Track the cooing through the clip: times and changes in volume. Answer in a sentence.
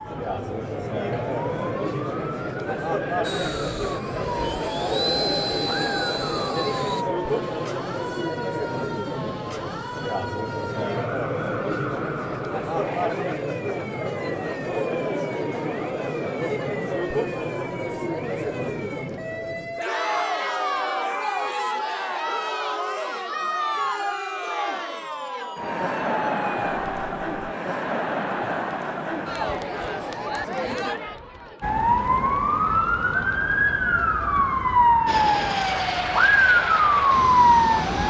The cooing can't be heard in this clip.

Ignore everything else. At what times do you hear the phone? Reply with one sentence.
You can't hear the phone here.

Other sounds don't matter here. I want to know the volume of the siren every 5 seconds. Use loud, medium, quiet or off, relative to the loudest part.
quiet, quiet, quiet, quiet, quiet, quiet, loud, loud.